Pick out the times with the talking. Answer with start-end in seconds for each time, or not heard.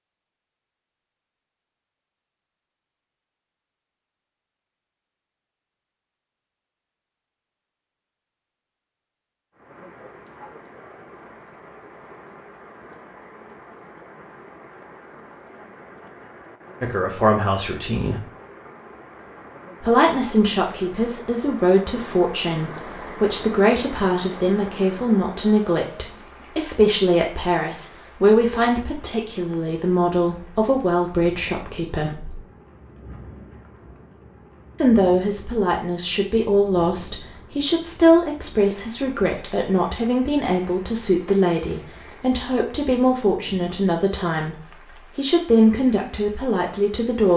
16.8-18.2, 19.8-32.4, 34.8-47.3.